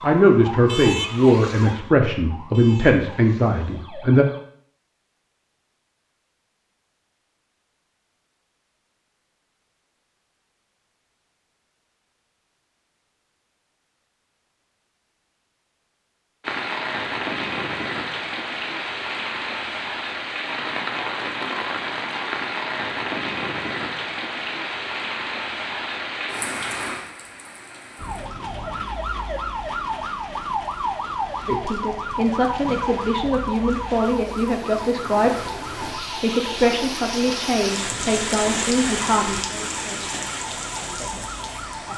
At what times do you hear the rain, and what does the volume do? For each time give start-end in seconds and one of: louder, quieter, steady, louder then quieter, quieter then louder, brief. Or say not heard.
16.4-41.9 quieter then louder.